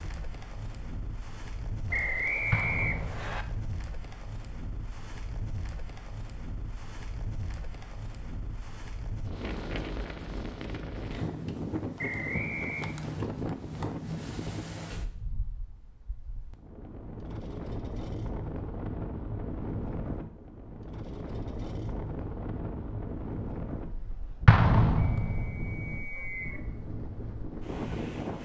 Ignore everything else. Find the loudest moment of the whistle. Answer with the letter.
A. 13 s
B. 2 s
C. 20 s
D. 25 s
B.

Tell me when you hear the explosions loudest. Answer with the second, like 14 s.
25 s.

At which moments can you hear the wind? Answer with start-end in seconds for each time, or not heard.
0.0-28.4.